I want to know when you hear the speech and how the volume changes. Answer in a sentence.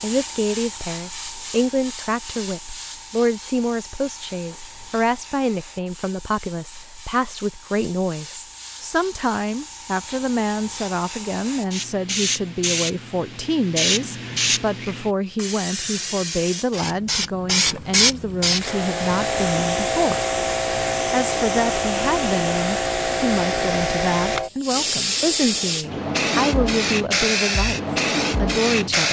The speech can be heard from 0.0 to 20.2 s, at a steady volume; and from 21.1 to 29.0 s, at a steady volume.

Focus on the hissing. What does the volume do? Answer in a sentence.
The loudness of the hissing goes up.